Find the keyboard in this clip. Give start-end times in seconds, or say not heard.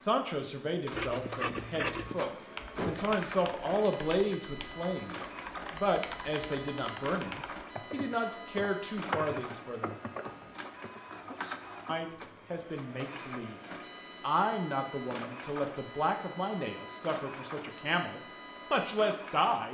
2.5-11.0.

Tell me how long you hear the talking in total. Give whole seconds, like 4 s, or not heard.
17 s.